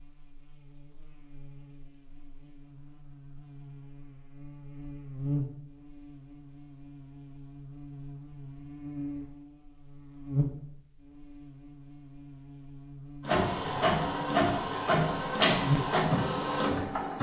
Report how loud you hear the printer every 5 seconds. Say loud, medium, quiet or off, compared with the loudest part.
off, off, loud, loud.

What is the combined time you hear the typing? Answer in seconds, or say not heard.
not heard.